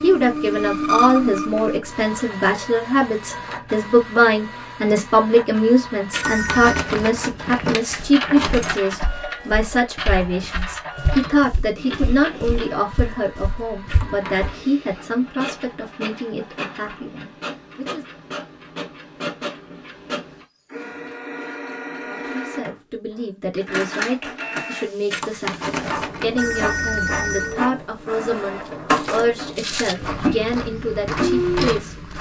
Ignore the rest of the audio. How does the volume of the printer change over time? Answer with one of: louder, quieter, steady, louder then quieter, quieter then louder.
quieter then louder.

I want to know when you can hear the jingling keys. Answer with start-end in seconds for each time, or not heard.
6.1-8.8, 13.8-14.6, 25.1-26.4.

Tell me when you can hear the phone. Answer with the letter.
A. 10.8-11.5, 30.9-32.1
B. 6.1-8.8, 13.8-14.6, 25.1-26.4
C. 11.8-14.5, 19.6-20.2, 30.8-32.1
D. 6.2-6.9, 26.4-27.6
D.